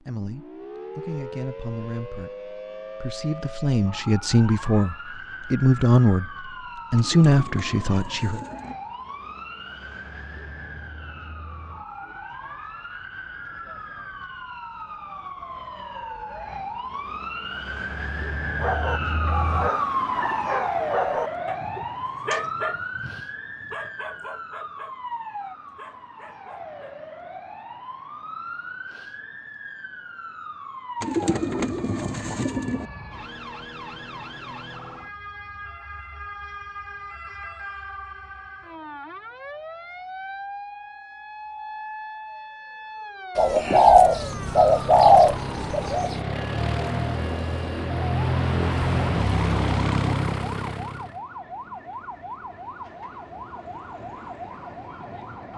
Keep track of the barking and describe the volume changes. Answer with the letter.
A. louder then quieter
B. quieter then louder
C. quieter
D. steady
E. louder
C.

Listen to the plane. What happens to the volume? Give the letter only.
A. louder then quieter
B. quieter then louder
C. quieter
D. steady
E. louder
E.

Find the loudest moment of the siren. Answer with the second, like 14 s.
20 s.